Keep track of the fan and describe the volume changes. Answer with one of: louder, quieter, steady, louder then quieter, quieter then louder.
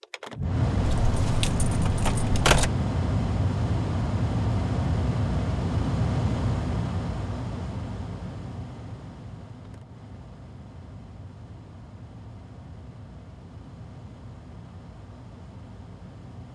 quieter.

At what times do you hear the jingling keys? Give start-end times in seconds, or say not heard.
0.8-2.7.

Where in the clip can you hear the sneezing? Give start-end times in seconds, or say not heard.
not heard.